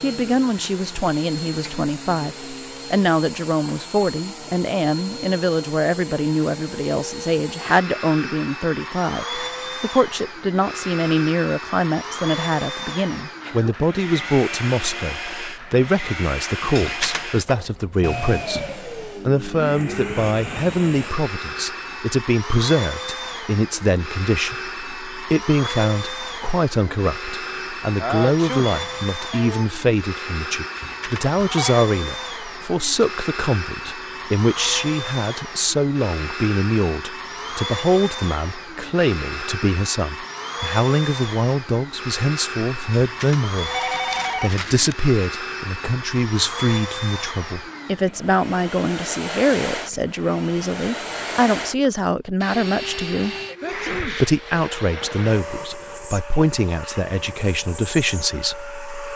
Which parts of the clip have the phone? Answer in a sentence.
The phone can be heard from 16.8 to 17.2 s, from 30.8 to 31.9 s and from 43.0 to 45.0 s.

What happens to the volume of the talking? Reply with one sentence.
The volume of the talking stays about the same.